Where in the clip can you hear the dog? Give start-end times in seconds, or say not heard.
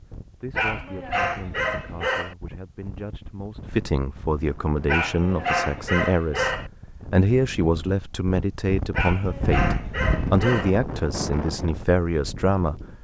0.6-2.4, 4.8-6.7, 8.9-10.8.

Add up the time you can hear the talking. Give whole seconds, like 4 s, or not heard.
13 s.